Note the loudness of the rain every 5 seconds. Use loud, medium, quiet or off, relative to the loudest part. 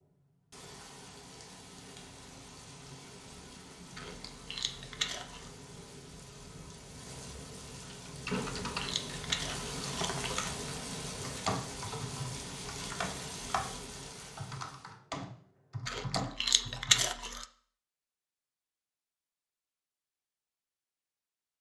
medium, loud, loud, off, off.